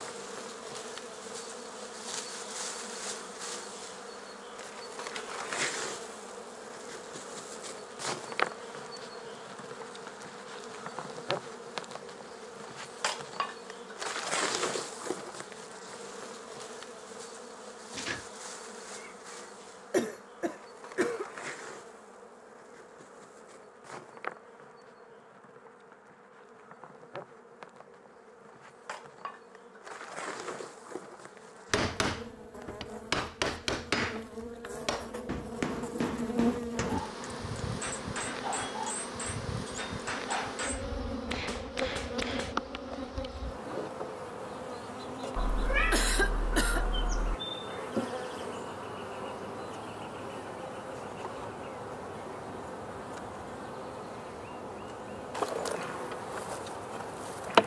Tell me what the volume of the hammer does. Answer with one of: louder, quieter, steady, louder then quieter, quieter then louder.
quieter.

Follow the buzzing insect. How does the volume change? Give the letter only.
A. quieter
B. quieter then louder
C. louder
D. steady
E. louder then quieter
B.